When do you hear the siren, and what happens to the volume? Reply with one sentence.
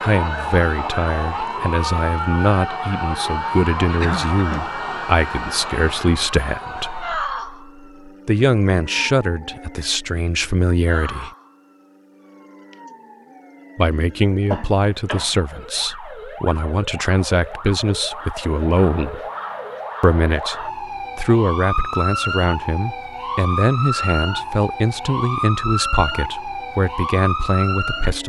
The siren can be heard from 0.0 to 28.2 s, getting quieter then louder.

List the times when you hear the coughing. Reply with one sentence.
The coughing can be heard from 4.0 to 4.7 s and from 14.5 to 15.4 s.